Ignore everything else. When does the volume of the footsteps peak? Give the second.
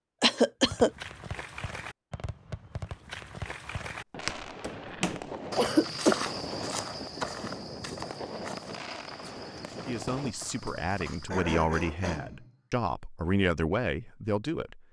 6 s.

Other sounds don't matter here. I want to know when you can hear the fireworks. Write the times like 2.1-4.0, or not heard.
0.6-10.3.